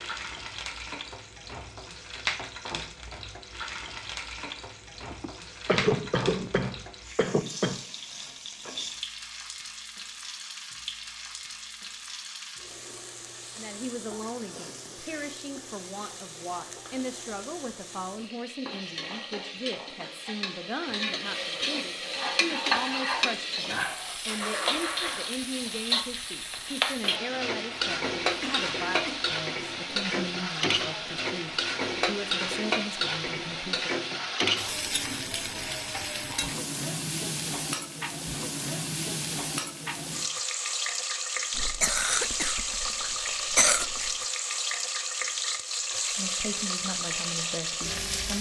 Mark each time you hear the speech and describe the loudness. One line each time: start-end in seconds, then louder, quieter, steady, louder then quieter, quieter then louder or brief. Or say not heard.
13.6-34.1 steady
46.1-48.3 brief.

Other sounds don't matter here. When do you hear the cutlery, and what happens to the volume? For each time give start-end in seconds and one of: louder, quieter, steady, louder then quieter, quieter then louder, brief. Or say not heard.
not heard.